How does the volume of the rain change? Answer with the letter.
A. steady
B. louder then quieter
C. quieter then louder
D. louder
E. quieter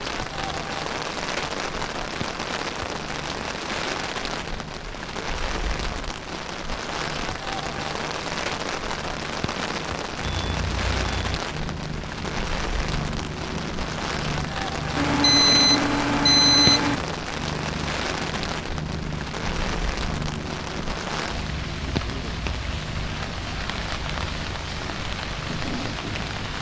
A.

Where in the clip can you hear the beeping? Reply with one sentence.
You can hear the beeping from 10.2 to 11.2 s and from 14.9 to 16.9 s.